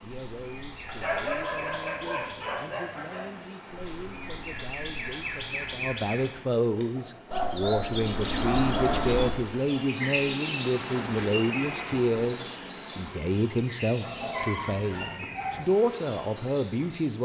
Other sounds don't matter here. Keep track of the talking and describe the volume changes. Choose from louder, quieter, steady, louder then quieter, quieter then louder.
louder.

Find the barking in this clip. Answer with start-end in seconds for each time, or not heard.
0.8-3.4, 7.0-9.1, 14.0-15.6.